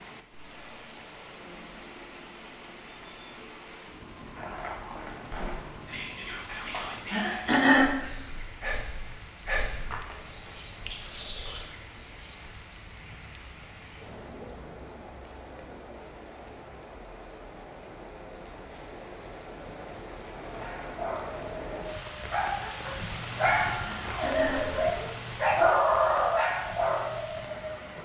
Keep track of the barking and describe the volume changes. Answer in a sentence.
The loudness of the barking goes up.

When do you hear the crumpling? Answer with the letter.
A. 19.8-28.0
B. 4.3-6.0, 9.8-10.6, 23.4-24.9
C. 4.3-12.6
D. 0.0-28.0
B.